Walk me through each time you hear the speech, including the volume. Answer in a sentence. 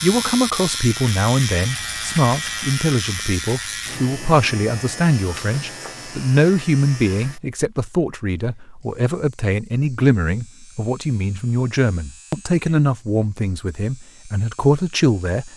The speech can be heard from 0.0 to 15.5 s, at a steady volume.